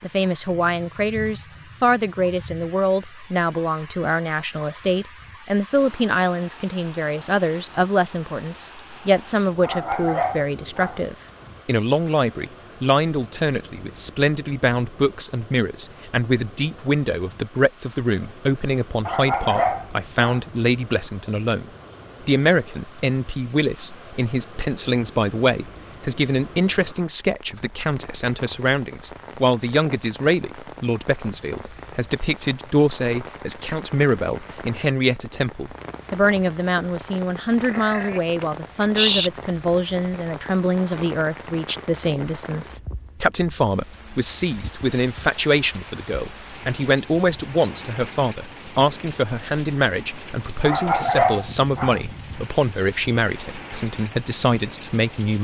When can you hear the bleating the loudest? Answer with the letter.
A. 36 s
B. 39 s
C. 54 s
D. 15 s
B.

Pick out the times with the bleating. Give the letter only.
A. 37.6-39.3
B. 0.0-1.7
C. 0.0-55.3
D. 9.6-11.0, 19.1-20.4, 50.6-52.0
A.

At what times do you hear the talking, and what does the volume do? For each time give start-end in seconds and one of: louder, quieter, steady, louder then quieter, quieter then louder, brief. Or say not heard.
0.0-55.3 steady.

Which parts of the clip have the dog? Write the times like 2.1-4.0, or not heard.
9.6-11.0, 19.1-20.4, 50.6-52.0.